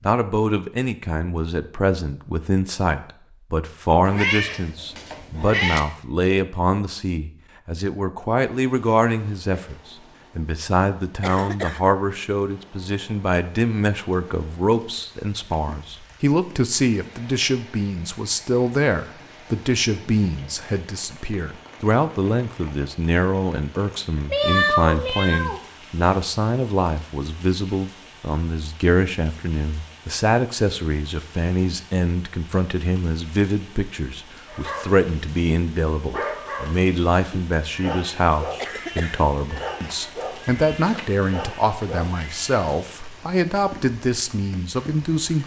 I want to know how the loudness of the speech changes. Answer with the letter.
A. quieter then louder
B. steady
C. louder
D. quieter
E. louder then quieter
B.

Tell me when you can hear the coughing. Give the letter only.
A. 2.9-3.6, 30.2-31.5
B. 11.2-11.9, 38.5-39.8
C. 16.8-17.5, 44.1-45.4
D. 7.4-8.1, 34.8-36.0
B.